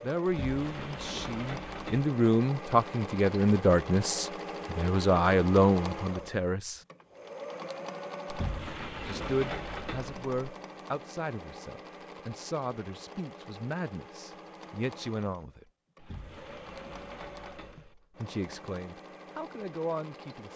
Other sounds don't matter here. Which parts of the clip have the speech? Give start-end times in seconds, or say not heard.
0.0-6.8, 9.1-15.7, 17.8-20.5.